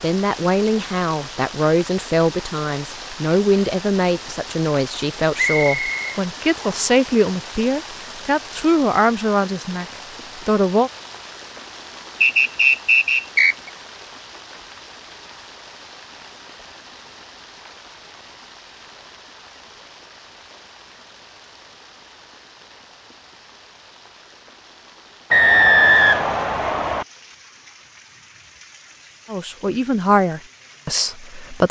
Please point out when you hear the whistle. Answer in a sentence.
You can hear the whistle from 5.3 to 6.8 s, from 12.2 to 13.7 s and from 25.3 to 27.1 s.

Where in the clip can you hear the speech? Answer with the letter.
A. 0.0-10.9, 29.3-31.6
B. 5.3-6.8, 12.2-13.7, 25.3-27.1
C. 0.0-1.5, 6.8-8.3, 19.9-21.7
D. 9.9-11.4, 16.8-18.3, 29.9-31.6
A.